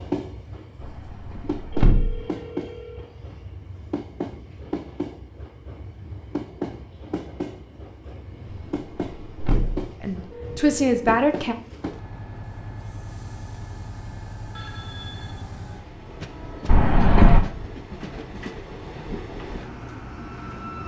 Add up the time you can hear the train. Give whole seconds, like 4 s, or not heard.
21 s.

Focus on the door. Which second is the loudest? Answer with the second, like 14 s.
17 s.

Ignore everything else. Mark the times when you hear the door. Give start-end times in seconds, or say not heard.
0.8-2.2, 8.8-9.8, 16.6-17.4.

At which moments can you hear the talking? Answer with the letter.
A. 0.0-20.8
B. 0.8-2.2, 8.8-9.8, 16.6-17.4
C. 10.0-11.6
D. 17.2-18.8
C.